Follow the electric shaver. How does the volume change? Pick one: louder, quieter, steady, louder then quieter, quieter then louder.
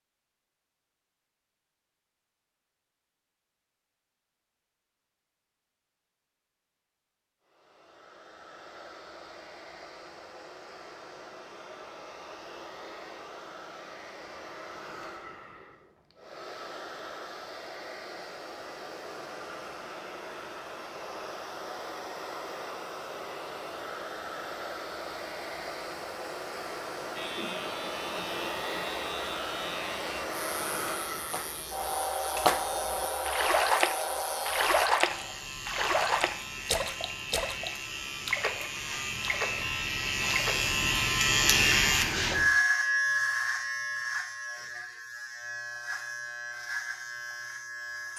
louder then quieter.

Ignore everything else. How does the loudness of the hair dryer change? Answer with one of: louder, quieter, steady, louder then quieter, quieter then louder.
louder.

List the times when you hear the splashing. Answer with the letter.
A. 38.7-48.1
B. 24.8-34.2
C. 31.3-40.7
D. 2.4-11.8
C.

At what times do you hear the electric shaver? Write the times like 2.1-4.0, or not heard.
27.1-48.1.